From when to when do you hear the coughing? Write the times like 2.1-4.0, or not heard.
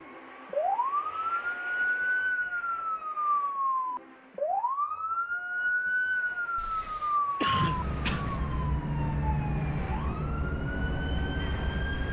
6.5-8.4.